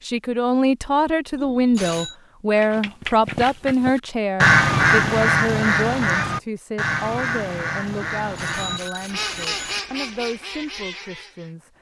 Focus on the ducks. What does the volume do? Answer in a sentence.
The loudness of the ducks goes down.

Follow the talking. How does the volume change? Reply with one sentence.
The volume of the talking goes down.